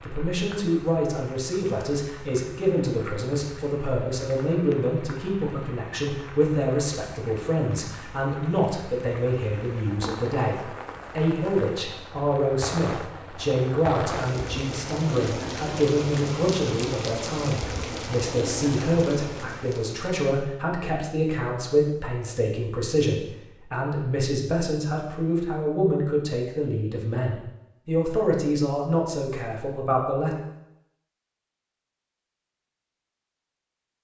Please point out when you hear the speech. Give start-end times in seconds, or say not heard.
0.0-30.4.